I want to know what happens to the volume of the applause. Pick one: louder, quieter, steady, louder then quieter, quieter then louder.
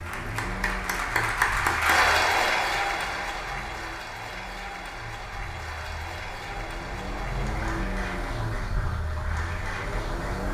quieter.